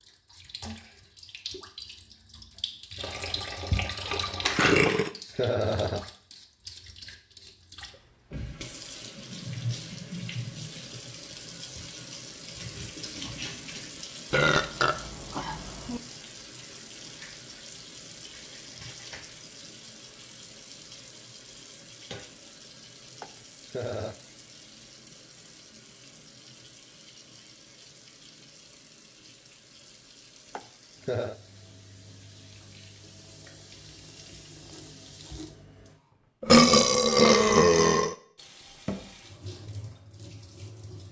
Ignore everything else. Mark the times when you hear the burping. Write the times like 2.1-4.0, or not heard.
4.0-5.1, 14.3-16.0, 36.4-38.1.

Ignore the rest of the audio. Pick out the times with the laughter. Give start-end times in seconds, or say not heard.
4.8-6.0, 23.2-24.1, 30.6-31.4.